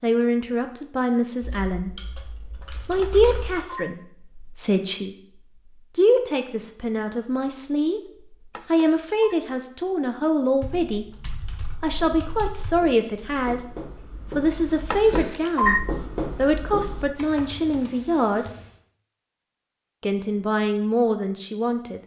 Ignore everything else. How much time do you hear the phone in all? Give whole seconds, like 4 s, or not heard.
3 s.